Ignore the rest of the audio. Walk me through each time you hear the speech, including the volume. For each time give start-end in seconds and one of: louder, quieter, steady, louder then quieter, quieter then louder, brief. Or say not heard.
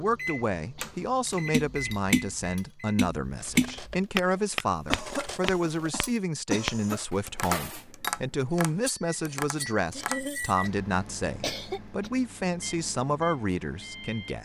0.0-14.3 steady.